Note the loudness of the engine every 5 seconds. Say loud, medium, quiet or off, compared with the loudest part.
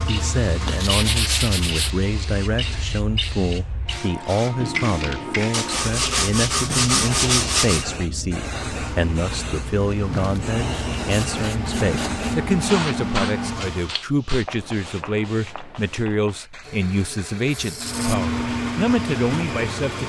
medium, medium, loud, loud.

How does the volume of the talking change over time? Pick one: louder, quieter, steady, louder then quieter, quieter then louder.
steady.